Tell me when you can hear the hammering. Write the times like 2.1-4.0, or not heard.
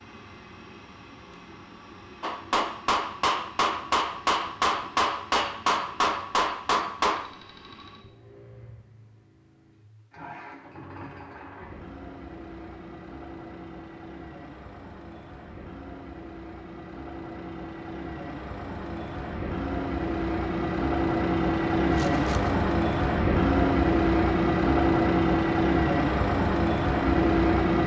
2.2-7.3.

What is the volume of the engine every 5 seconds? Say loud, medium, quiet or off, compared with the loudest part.
quiet, quiet, quiet, quiet, loud, loud.